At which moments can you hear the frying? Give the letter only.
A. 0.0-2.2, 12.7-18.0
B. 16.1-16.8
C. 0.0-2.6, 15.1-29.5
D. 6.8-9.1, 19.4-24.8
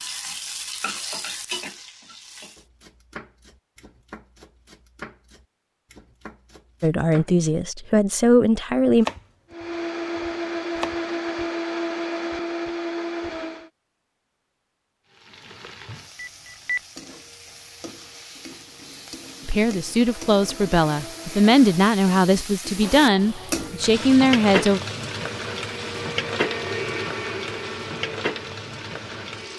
C.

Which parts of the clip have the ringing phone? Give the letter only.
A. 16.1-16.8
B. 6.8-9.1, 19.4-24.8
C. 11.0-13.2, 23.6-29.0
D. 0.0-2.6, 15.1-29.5
A.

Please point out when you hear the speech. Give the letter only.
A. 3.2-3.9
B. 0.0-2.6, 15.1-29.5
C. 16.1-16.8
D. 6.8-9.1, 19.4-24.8
D.